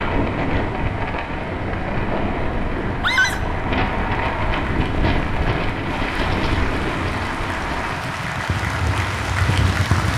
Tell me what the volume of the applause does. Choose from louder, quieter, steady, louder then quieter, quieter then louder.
louder.